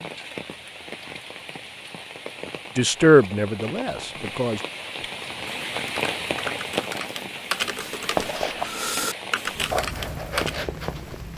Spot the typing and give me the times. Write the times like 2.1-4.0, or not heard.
5.5-10.6.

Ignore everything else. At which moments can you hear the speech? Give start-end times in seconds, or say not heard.
2.8-4.6.